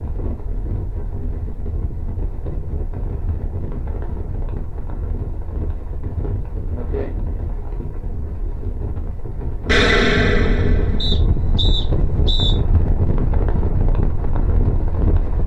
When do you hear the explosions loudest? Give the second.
10 s.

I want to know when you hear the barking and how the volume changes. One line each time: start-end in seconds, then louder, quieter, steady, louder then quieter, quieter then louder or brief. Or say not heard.
not heard.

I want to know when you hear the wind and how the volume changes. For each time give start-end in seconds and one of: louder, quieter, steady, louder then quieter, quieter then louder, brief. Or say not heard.
0.0-15.4 louder.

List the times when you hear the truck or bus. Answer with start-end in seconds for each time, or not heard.
not heard.